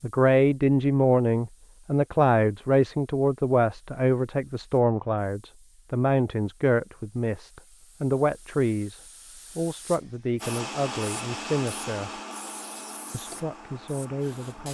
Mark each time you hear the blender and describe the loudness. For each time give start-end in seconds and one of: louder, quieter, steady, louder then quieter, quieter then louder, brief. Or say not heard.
10.4-14.6 quieter.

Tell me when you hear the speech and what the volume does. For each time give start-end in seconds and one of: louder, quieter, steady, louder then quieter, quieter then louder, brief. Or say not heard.
0.0-12.1 quieter
13.1-14.6 brief.